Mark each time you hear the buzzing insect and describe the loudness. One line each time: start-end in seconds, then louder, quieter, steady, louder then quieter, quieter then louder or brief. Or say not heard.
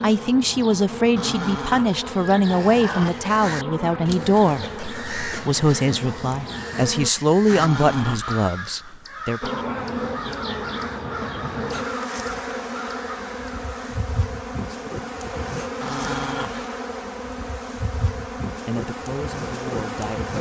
0.0-7.1 steady
9.4-20.3 steady.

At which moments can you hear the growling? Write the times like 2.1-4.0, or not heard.
1.1-3.1, 7.5-8.4, 15.8-16.7.